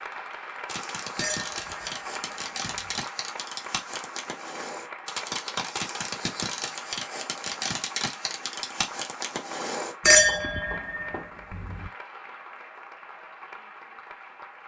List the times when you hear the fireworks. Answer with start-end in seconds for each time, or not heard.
0.7-11.2.